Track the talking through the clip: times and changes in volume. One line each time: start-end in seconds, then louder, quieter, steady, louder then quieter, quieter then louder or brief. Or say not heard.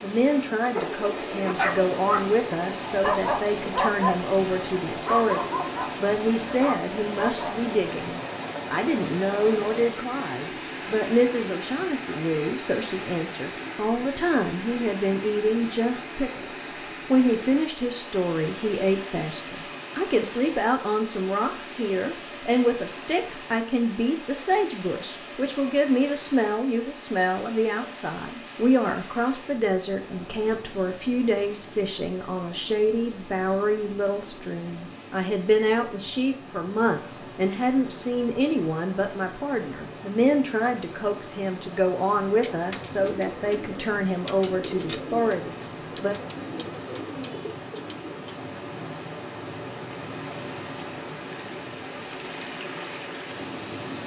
0.0-46.1 steady.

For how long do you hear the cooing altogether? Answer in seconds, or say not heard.
6 s.